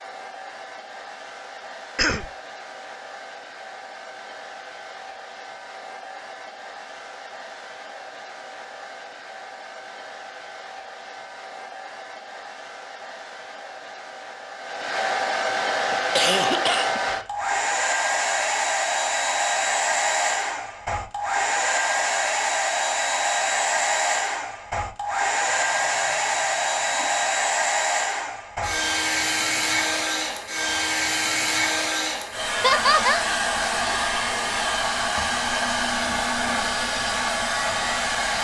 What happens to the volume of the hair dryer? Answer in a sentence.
The volume of the hair dryer goes up.